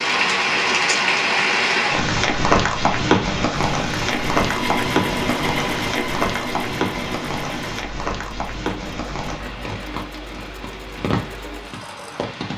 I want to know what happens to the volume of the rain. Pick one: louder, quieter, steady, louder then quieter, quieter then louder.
quieter.